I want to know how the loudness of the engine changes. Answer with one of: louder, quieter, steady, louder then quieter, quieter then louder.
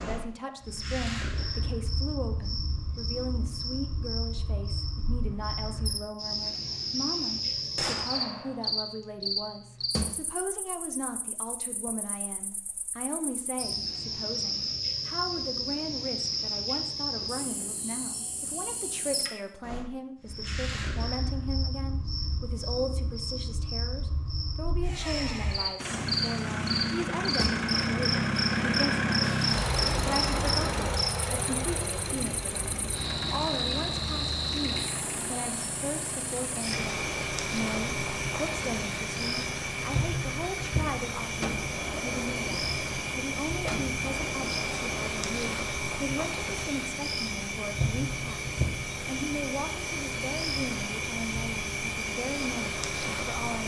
quieter.